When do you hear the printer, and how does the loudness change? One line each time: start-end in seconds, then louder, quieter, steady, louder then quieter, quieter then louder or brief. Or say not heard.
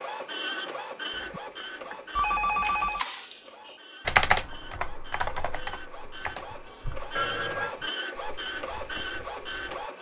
0.0-9.9 quieter then louder.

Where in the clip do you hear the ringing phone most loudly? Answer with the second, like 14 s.
2 s.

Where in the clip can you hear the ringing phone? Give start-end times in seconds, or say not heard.
1.1-3.0, 7.2-7.8.